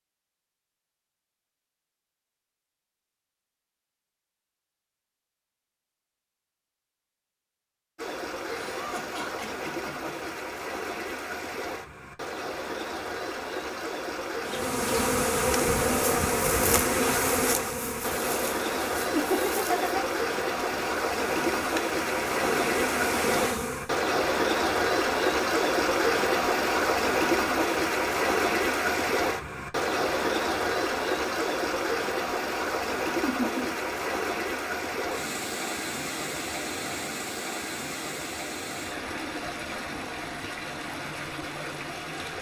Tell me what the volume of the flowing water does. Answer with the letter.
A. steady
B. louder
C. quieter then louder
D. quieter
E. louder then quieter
E.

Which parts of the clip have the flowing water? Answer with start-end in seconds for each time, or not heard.
8.0-42.3.